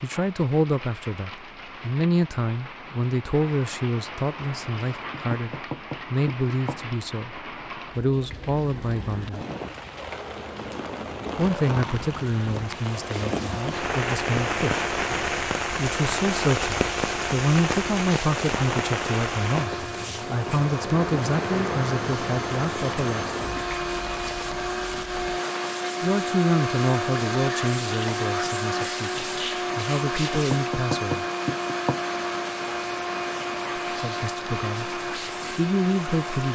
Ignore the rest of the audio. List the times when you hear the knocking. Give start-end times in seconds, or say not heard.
5.1-6.8, 30.3-32.0.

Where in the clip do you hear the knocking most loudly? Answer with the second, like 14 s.
31 s.